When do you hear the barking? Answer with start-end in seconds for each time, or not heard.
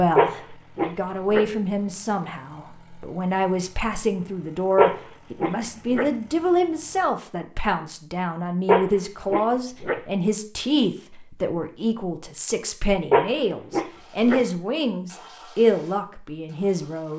0.1-1.4, 4.8-6.1, 8.7-10.0, 13.1-14.4.